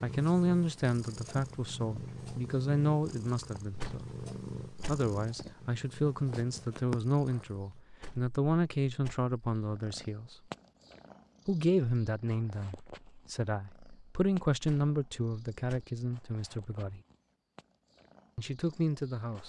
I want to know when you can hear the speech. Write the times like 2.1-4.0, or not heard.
0.0-4.0, 4.7-10.3, 11.4-17.0, 18.4-19.4.